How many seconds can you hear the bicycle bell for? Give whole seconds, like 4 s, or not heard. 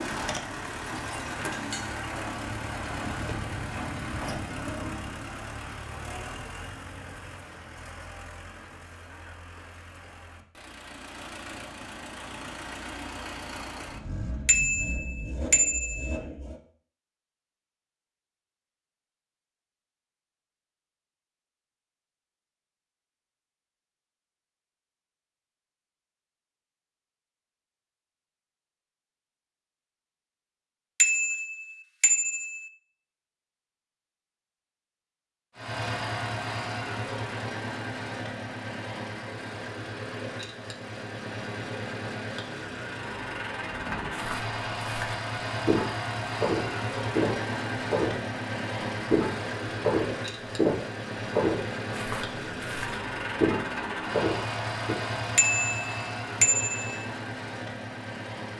5 s.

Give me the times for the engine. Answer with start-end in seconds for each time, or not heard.
0.0-16.6, 35.5-58.5.